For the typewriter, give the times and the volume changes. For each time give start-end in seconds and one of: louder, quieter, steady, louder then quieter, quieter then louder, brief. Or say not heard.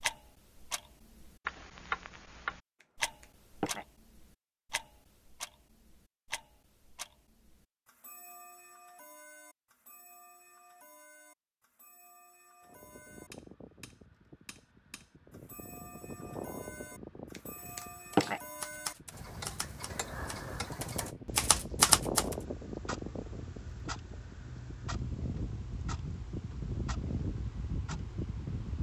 17.8-22.4 quieter then louder.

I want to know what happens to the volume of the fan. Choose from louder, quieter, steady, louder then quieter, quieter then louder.
louder.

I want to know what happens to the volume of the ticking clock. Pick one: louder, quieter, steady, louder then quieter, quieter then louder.
quieter then louder.